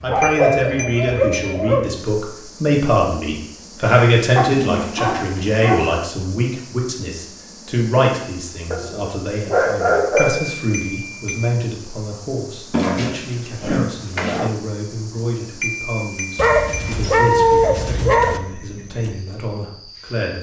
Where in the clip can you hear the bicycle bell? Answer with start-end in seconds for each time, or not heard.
0.2-1.6, 10.2-11.5, 15.6-16.9.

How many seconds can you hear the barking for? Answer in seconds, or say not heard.
9 s.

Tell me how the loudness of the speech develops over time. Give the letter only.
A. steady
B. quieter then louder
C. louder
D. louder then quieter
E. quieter
E.